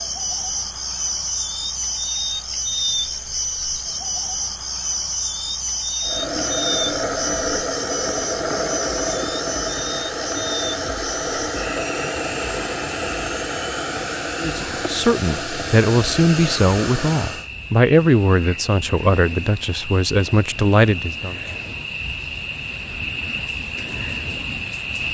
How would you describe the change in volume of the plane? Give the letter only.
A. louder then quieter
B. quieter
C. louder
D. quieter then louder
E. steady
E.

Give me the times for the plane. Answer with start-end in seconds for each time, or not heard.
6.0-17.5.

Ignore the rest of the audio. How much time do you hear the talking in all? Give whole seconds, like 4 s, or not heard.
7 s.